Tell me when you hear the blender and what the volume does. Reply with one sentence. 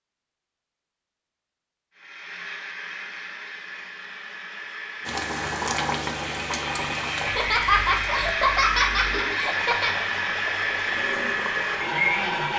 The blender can be heard from 1.9 to 12.5 s, getting louder.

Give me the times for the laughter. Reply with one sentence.
The laughter can be heard from 7.2 to 9.9 s.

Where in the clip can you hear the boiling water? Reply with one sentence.
The boiling water can be heard from 5.0 to 12.5 s.